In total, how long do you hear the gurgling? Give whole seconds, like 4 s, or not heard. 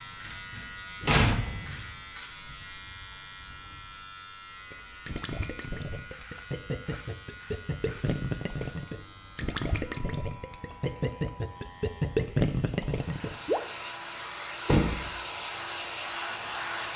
9 s.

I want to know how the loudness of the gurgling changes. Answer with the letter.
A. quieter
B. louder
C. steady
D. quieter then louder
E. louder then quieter
B.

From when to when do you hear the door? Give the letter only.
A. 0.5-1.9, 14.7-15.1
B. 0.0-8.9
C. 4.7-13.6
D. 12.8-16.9
A.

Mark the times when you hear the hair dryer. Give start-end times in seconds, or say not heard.
12.8-16.9.